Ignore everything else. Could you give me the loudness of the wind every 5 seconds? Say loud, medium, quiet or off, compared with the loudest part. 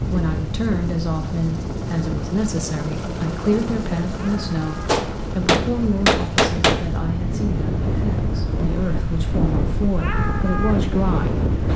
medium, loud, loud.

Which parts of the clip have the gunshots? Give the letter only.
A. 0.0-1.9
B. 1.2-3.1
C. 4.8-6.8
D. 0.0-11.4
C.